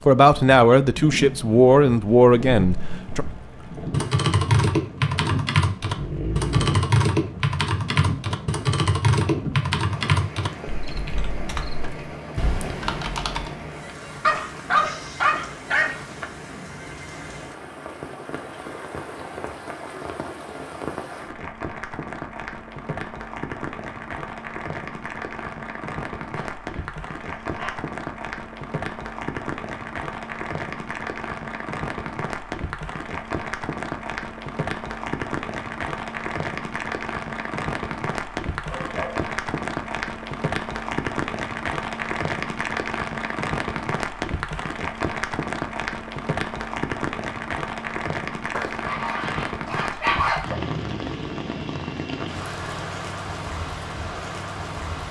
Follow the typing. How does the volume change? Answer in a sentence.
The loudness of the typing goes down.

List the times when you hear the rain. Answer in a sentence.
The rain can be heard from 0.0 to 55.0 s.